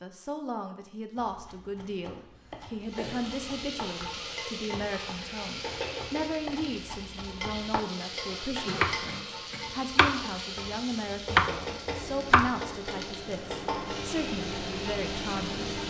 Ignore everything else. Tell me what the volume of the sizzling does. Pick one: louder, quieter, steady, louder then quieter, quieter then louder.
steady.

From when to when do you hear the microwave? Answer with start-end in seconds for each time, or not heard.
12.0-15.8.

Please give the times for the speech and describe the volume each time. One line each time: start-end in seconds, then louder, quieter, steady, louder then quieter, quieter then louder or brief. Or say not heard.
0.0-15.7 steady.